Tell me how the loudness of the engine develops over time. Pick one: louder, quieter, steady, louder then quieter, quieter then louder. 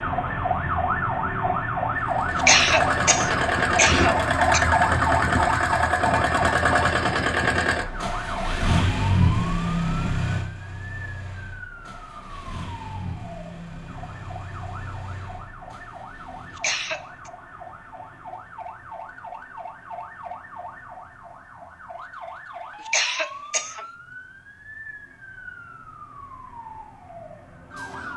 quieter.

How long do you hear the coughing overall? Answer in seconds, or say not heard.
4 s.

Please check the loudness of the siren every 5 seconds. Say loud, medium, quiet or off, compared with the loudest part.
loud, loud, quiet, quiet, quiet, quiet.